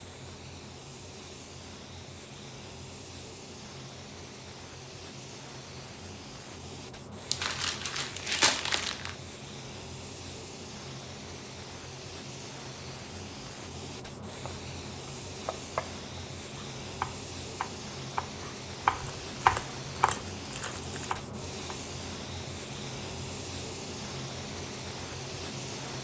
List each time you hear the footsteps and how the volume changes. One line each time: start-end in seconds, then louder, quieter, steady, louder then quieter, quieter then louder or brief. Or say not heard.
not heard.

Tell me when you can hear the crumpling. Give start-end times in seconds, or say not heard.
7.3-9.2, 18.9-21.2.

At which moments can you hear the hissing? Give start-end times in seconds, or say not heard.
0.0-25.9.